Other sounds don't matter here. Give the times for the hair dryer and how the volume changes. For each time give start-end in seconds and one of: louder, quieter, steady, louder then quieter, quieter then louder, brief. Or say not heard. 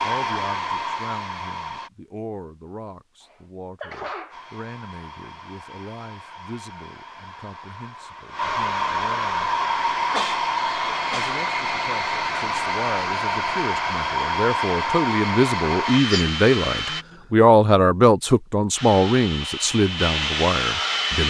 0.0-1.9 brief
4.3-17.1 louder
18.8-21.2 brief.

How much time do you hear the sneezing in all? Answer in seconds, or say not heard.
4 s.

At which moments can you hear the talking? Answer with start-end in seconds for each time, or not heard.
0.0-9.5, 11.1-21.2.